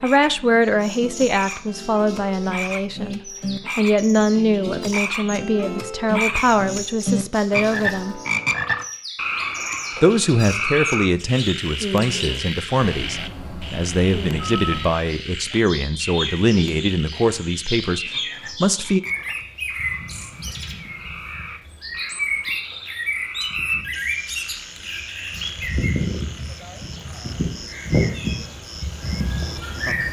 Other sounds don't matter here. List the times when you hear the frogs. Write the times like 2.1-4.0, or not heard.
0.0-30.0.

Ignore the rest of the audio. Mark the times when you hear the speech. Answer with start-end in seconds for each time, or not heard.
0.0-8.2, 10.0-19.0.